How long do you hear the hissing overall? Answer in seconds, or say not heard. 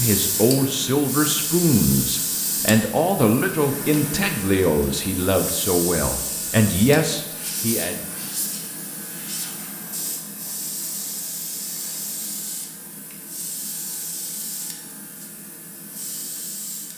17 s.